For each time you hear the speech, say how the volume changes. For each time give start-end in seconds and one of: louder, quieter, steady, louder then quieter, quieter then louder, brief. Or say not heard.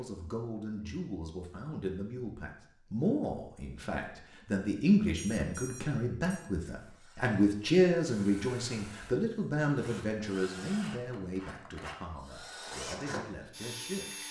0.0-14.2 louder then quieter.